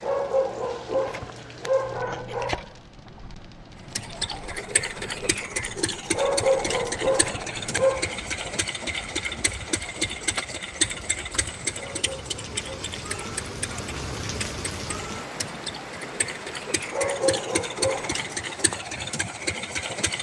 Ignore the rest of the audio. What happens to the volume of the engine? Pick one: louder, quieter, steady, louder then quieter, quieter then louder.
quieter then louder.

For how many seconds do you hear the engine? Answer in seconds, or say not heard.
16 s.